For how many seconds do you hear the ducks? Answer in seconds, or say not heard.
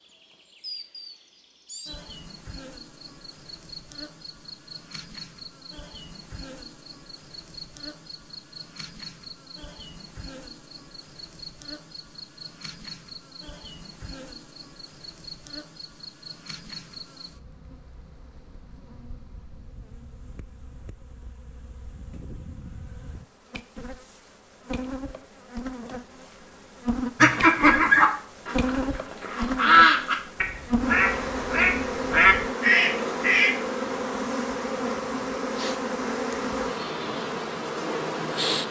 6 s.